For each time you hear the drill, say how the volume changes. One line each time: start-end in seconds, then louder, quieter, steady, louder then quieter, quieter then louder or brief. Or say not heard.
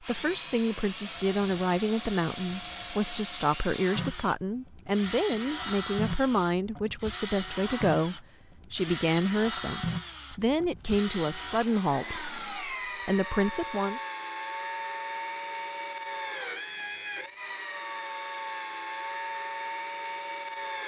0.0-20.8 steady.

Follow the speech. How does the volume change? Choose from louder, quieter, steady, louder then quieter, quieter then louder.
steady.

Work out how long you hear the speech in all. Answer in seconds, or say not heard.
14 s.